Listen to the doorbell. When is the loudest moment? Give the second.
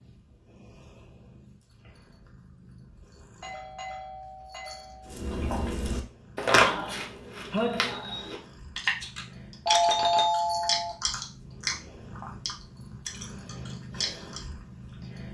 10 s.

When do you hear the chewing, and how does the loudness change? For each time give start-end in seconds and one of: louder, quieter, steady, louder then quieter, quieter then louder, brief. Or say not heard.
5.1-14.4 quieter.